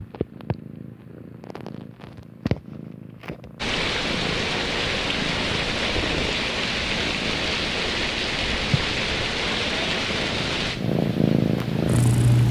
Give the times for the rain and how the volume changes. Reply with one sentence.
You can hear the rain from 3.5 to 12.4 s, getting quieter.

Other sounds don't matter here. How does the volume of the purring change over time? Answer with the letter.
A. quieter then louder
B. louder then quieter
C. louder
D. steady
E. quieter
C.